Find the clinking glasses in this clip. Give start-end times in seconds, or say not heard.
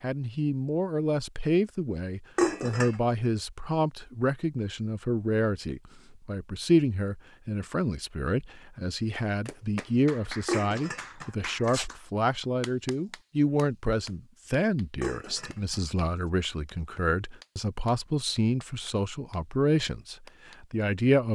2.4-3.0, 10.4-11.9, 15.0-15.8.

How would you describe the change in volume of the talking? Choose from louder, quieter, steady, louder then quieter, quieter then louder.
steady.